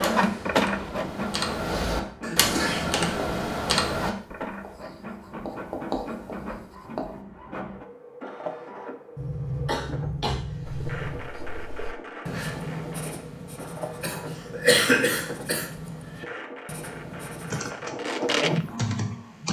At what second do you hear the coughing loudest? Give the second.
15 s.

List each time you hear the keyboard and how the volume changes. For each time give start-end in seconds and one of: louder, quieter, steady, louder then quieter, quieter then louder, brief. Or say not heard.
0.0-4.2 louder
17.5-19.4 brief.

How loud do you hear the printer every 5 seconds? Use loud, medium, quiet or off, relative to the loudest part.
loud, medium, medium, loud.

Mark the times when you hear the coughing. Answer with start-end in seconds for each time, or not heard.
2.2-3.0, 9.2-11.2, 14.0-15.7.